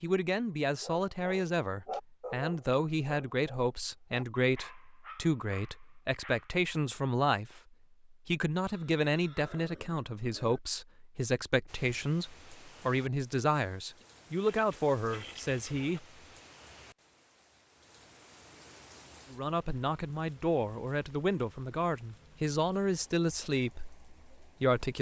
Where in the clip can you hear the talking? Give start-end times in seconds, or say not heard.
0.0-16.1, 19.3-24.9.